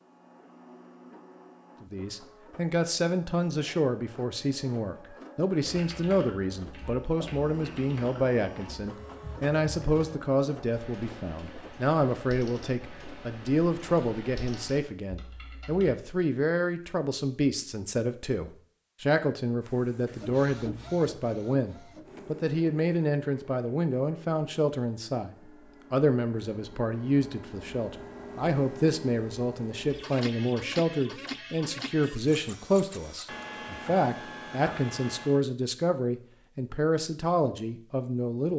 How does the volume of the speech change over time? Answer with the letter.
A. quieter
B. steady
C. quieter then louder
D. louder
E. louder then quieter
B.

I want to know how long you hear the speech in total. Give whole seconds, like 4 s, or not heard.
37 s.